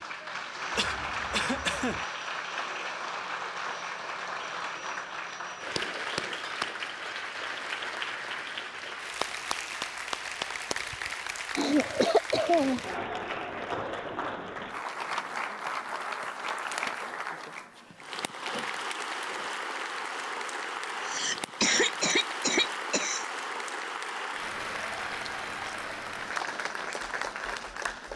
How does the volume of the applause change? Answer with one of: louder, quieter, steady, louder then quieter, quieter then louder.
steady.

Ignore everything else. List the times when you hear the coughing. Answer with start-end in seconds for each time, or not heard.
0.8-2.0, 11.6-12.9, 21.1-23.2.